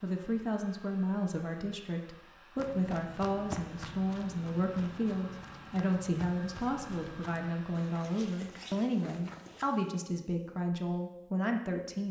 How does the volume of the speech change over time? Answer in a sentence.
The loudness of the speech stays about the same.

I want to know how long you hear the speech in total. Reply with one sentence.
You can hear the speech for 12 seconds altogether.